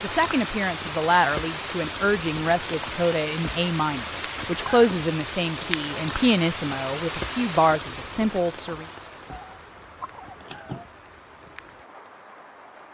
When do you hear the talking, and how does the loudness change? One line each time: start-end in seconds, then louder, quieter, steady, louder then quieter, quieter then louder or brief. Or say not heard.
0.0-8.8 steady.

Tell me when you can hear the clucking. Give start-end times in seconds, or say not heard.
9.3-10.8.